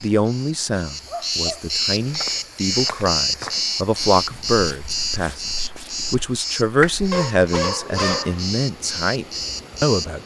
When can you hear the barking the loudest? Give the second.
8 s.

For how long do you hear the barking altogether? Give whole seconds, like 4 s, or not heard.
2 s.